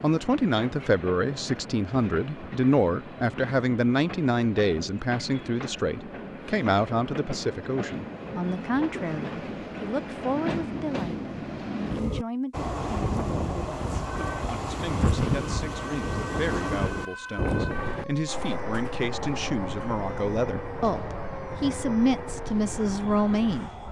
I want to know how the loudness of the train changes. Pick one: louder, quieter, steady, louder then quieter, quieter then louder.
louder then quieter.